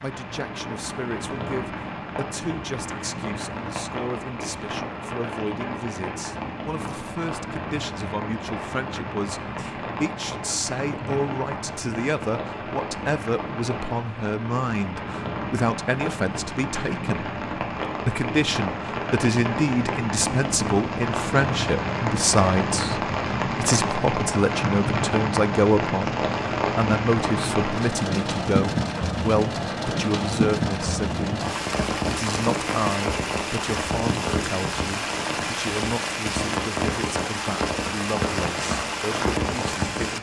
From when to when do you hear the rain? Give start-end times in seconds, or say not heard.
0.0-40.1.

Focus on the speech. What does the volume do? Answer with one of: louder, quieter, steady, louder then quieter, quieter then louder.
louder then quieter.